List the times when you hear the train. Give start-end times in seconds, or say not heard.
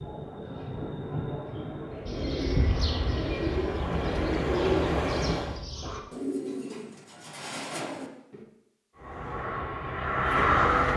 0.0-5.6, 9.0-10.9.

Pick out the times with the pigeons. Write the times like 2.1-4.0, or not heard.
2.0-8.4.